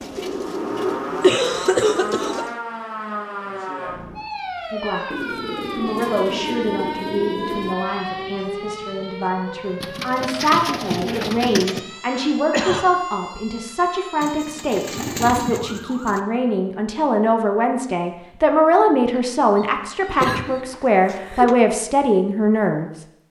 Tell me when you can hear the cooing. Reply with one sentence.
The cooing can be heard from 0.0 to 2.5 s, from 5.1 to 7.8 s, from 9.8 to 11.8 s, from 14.2 to 16.2 s and from 19.1 to 21.6 s.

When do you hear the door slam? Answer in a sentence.
The door slam can't be heard in this clip.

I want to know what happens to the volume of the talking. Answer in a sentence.
The loudness of the talking goes up.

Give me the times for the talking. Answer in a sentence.
You can hear the talking from 4.7 to 22.9 s.